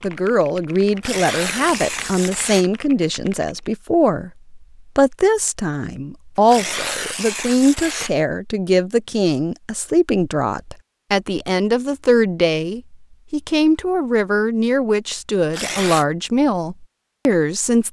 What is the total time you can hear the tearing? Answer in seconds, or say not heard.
4 s.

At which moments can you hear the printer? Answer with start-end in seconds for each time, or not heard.
not heard.